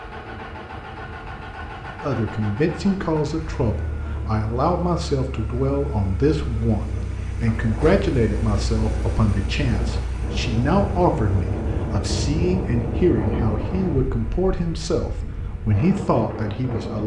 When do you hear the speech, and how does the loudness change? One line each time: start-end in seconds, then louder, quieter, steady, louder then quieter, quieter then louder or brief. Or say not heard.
2.0-17.0 steady.